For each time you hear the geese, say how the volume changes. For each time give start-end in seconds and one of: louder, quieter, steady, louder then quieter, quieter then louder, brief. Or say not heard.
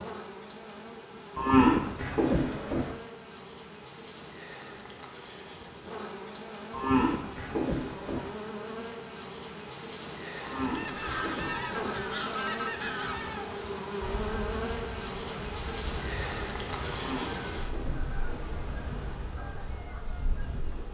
10.8-20.6 quieter.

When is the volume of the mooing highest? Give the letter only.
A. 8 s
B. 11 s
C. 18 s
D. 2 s
D.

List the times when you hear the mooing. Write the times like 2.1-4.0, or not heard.
1.4-3.0, 6.7-8.3, 10.4-12.0, 16.9-18.5.